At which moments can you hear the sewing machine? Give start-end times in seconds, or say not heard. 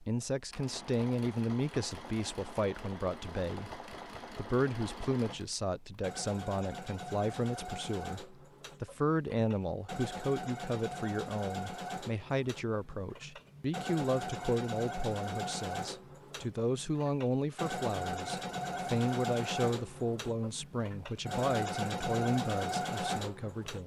0.0-23.8.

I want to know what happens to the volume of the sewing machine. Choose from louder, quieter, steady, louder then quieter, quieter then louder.
louder.